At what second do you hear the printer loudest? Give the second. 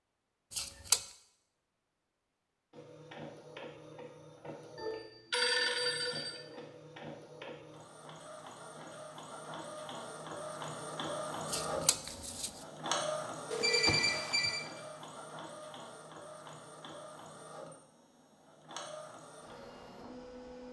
13 s.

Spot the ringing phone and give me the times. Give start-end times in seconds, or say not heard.
4.8-6.4, 13.5-14.6.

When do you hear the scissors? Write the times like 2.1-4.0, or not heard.
0.5-1.0, 11.5-12.6.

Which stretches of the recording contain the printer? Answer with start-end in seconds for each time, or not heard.
2.7-20.6.